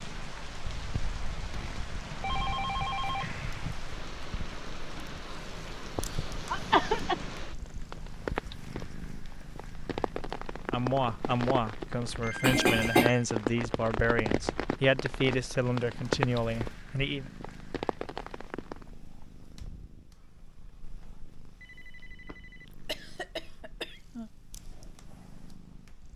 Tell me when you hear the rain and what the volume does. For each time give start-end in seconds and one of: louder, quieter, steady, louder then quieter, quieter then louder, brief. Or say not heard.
0.0-18.9 louder.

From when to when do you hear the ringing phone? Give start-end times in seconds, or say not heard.
2.0-3.8, 12.2-13.2, 21.6-22.6.